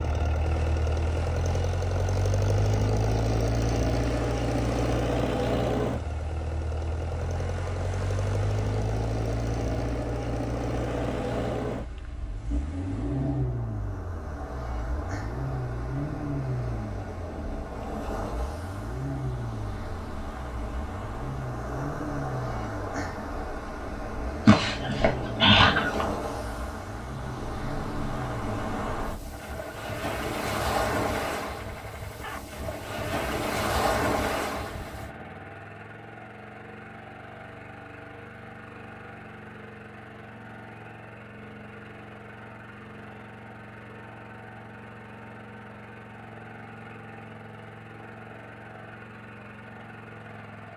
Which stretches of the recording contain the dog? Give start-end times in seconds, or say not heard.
24.4-26.1.